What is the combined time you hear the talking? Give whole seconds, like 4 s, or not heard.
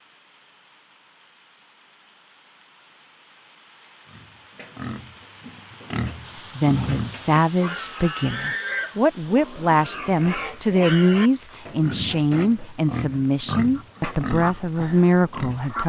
9 s.